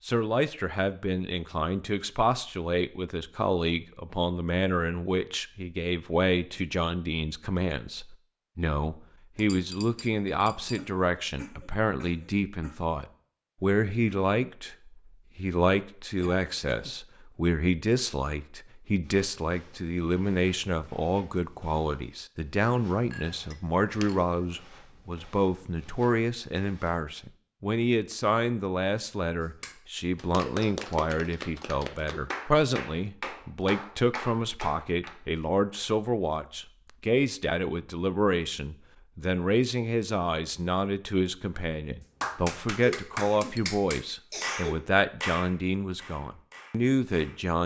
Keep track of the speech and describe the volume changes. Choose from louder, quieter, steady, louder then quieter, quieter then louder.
steady.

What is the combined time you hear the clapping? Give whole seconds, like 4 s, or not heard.
11 s.